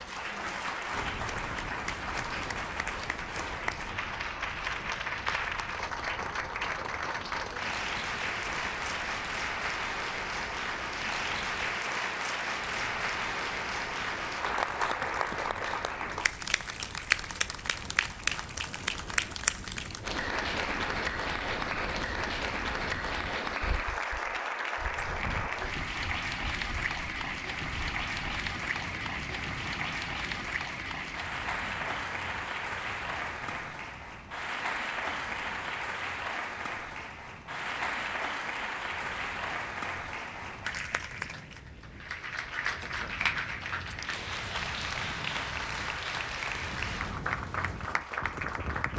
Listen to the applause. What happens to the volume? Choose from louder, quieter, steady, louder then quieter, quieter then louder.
steady.